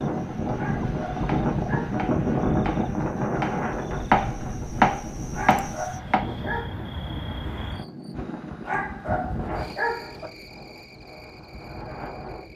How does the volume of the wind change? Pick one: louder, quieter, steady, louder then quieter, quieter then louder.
quieter.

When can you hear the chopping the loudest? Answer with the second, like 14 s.
5 s.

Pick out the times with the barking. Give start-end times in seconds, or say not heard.
0.6-2.0, 5.3-6.8, 8.7-10.3.